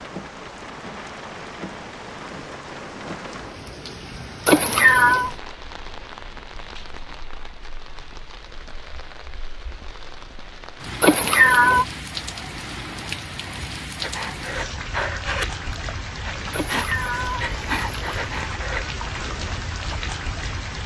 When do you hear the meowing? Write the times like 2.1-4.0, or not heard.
4.5-5.3, 11.0-11.8, 16.5-18.5.